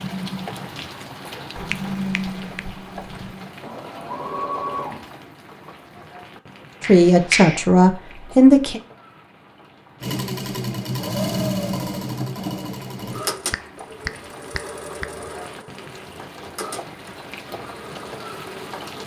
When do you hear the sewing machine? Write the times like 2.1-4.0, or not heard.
0.0-5.1, 10.0-19.0.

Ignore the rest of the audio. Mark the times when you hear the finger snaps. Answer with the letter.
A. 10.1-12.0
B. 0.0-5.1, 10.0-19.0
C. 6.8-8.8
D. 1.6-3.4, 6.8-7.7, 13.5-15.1
D.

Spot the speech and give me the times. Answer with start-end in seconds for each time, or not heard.
6.8-8.8.